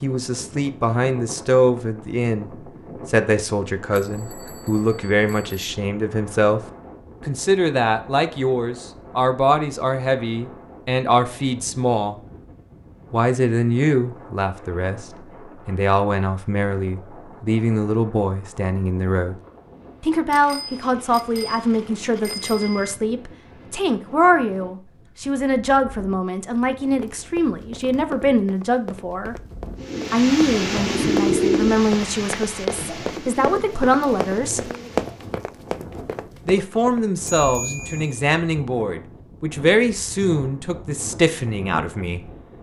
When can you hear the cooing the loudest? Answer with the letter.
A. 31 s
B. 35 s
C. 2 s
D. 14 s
A.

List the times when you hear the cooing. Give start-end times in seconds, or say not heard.
29.8-35.4.